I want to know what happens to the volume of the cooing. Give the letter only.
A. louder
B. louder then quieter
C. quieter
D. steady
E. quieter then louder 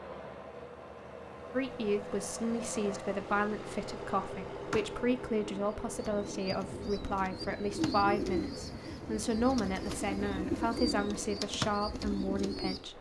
A.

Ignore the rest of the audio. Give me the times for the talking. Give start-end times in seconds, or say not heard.
1.5-12.9.